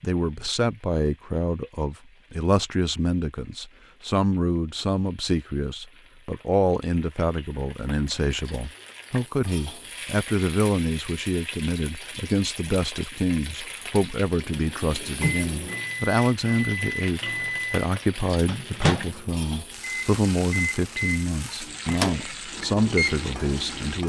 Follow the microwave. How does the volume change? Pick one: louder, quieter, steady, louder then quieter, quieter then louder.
steady.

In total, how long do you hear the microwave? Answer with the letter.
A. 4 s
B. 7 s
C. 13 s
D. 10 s
D.